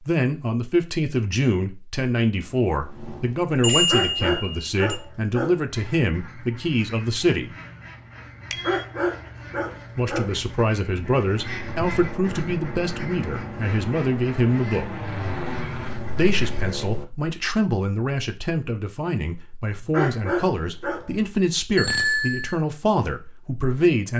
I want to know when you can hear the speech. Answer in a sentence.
The speech can be heard from 0.1 to 7.5 s, from 9.9 to 14.9 s and from 16.1 to 24.1 s.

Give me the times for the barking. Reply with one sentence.
The barking can be heard from 3.7 to 5.7 s, from 8.4 to 10.4 s and from 19.7 to 21.1 s.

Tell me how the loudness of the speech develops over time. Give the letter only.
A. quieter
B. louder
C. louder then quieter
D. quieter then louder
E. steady
E.